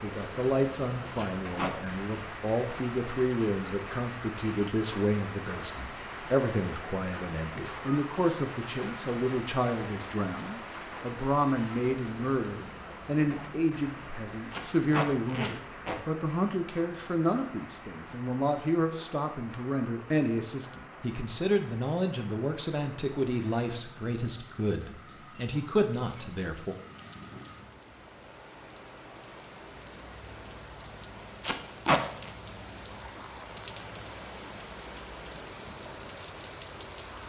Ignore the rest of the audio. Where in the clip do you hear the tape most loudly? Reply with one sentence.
The loudest moment of the tape is at 32 seconds.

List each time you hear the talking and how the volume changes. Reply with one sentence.
You can hear the talking from 0.0 to 26.8 s, at a steady volume.